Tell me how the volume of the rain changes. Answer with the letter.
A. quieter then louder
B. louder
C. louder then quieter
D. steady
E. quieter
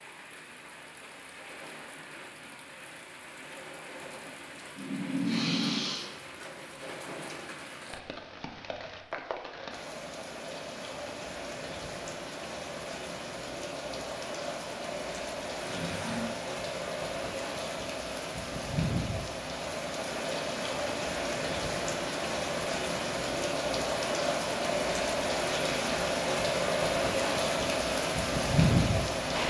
B.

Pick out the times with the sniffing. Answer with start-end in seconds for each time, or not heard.
4.8-6.1, 15.6-16.4.